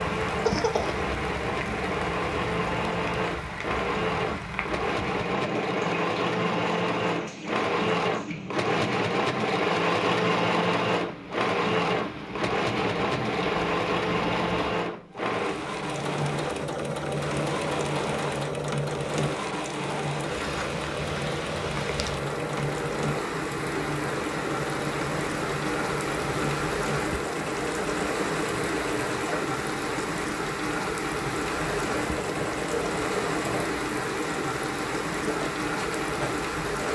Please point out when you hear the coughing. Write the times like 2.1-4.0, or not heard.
0.5-1.1.